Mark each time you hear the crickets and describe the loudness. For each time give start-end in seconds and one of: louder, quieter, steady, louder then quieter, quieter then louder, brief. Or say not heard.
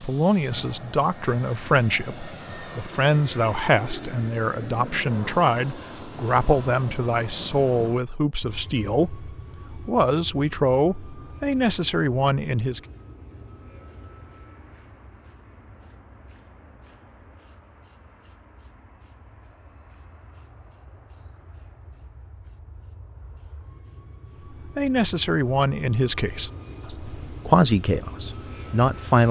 0.0-29.2 louder then quieter.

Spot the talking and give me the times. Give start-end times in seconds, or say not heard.
0.0-12.8, 24.8-29.2.